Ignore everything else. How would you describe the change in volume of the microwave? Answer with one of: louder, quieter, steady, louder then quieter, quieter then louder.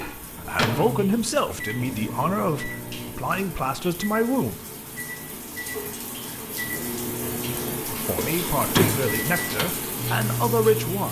quieter then louder.